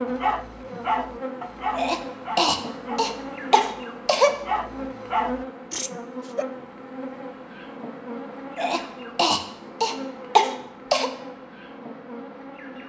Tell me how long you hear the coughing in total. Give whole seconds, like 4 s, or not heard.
5 s.